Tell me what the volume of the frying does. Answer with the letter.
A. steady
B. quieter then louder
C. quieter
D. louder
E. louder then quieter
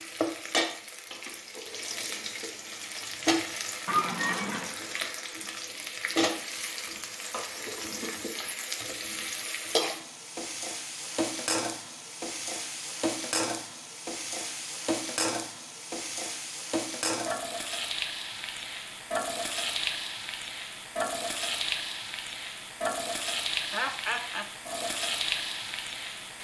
A.